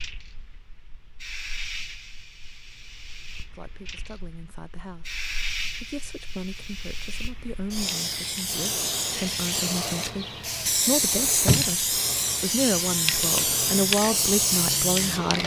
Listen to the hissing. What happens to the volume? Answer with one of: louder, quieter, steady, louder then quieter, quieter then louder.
louder.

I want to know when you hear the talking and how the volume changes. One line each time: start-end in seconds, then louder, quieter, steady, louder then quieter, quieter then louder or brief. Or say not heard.
3.5-15.4 louder.